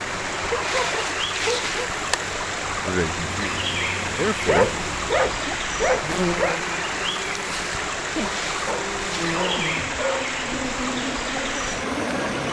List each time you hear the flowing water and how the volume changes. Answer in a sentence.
The flowing water can be heard from 0.0 to 12.4 s, at a steady volume.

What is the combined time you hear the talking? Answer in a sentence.
The talking can be heard for 2 seconds in total.